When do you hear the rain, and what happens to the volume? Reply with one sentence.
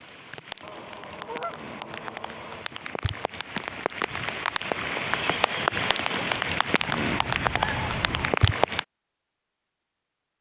You can hear the rain from 0.0 to 8.8 s, getting louder.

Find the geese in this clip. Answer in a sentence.
You can hear the geese from 0.6 to 2.6 s and from 6.8 to 8.3 s.